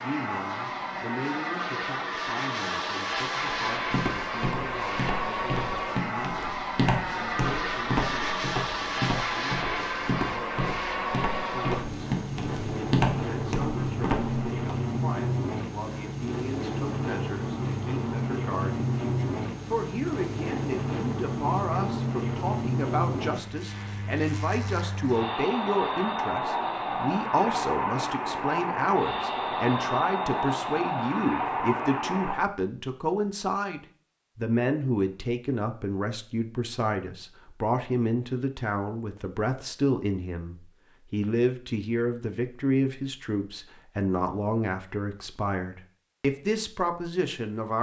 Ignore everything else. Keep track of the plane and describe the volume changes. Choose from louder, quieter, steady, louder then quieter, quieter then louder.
steady.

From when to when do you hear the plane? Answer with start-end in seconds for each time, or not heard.
0.0-32.4.